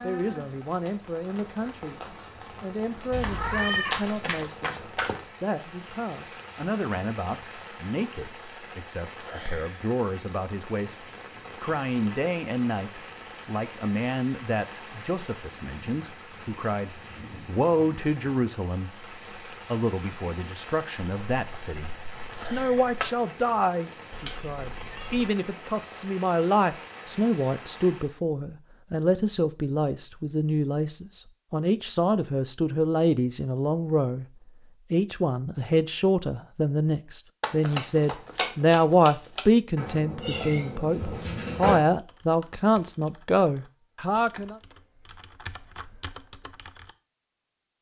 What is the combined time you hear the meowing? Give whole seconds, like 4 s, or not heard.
5 s.